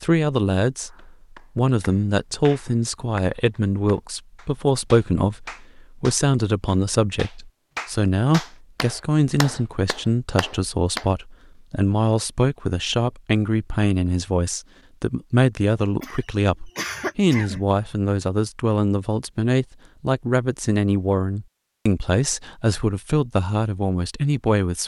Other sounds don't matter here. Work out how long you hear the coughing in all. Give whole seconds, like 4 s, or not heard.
2 s.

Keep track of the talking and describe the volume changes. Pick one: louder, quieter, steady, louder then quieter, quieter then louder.
steady.